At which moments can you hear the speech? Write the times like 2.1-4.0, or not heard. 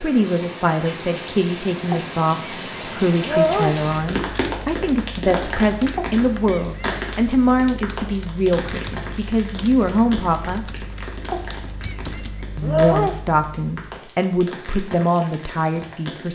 0.0-10.7, 12.6-16.3.